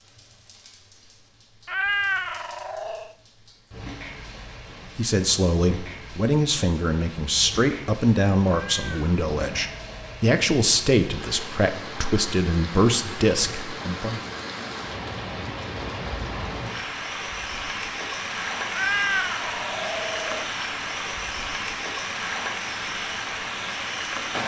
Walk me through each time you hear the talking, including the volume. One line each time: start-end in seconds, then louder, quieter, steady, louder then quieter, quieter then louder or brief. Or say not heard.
5.0-14.2 steady.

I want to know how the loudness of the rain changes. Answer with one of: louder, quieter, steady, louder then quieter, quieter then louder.
louder.